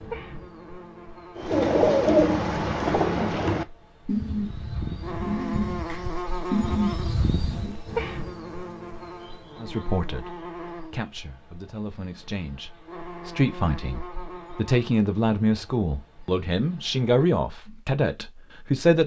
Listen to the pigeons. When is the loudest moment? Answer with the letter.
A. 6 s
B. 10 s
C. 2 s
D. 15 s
C.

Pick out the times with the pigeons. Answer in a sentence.
The pigeons can be heard from 1.4 to 7.8 s.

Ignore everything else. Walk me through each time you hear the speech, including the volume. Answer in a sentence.
The speech can be heard from 9.6 to 19.0 s, getting louder.